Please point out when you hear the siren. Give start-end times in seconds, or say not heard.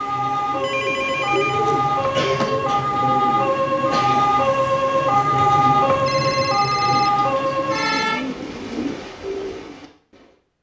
0.0-8.2.